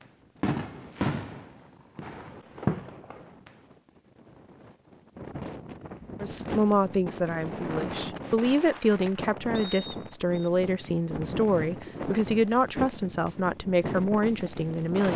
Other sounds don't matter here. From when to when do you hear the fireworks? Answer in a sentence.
The fireworks can be heard from 0.0 to 3.5 s and from 10.3 to 15.1 s.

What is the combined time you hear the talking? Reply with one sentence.
The talking can be heard for 9 seconds in total.